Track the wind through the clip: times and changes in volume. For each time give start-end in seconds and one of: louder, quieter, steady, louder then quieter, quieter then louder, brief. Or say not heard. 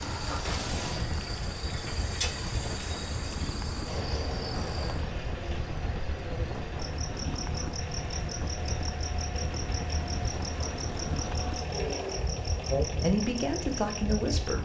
0.0-14.6 steady.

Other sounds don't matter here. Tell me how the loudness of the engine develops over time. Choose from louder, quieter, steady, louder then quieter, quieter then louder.
steady.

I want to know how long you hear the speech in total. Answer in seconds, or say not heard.
2 s.